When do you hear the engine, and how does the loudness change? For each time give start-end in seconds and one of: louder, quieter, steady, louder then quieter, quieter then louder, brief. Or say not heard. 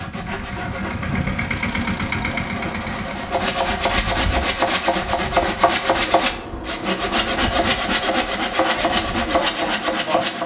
0.0-10.4 quieter.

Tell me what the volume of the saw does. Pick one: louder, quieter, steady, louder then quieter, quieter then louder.
louder.